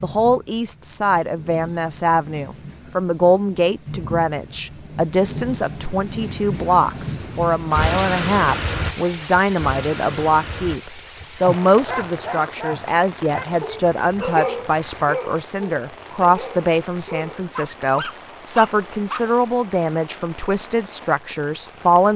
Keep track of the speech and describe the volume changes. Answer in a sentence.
The loudness of the speech stays about the same.